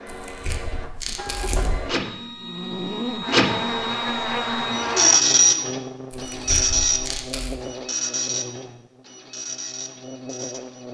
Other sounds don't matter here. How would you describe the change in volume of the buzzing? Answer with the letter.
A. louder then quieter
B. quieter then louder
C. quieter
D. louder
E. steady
C.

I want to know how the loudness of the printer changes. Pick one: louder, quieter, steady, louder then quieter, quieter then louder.
louder then quieter.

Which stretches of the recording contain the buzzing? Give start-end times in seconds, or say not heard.
2.4-10.9.